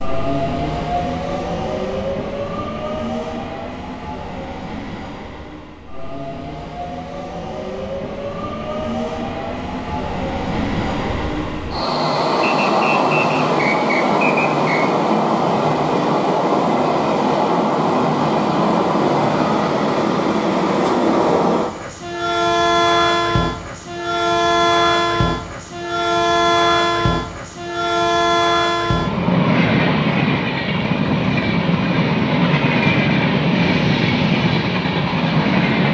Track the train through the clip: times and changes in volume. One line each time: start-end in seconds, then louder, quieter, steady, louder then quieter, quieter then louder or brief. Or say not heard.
0.0-35.8 louder.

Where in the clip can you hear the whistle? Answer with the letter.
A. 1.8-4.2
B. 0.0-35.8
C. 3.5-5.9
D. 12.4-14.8
D.